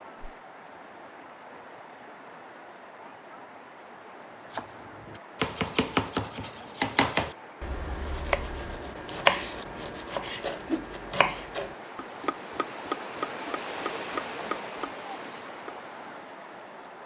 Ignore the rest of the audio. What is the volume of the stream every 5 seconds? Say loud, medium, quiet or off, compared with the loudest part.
medium, medium, loud, loud.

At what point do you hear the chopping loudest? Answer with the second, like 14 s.
9 s.